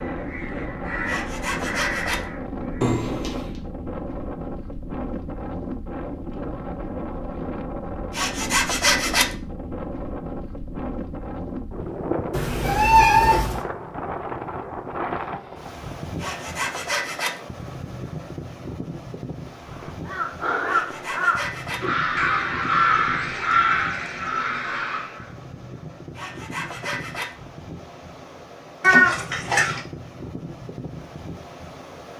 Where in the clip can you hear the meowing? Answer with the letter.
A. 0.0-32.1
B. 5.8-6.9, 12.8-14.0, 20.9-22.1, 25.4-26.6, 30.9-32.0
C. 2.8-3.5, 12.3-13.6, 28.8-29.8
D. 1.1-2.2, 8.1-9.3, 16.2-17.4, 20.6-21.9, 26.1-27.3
C.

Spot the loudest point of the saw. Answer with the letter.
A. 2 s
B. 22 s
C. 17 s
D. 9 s
D.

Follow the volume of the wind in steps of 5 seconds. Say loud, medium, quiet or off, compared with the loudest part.
loud, loud, loud, loud, medium, medium, medium.